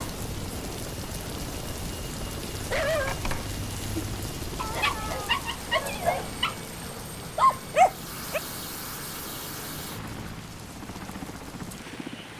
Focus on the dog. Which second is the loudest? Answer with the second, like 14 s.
8 s.